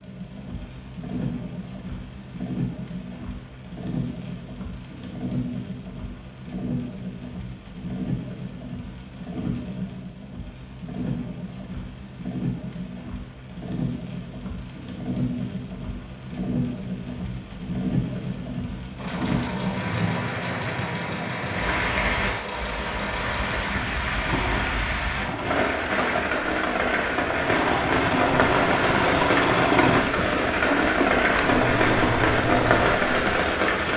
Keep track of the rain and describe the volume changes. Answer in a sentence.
The loudness of the rain goes up.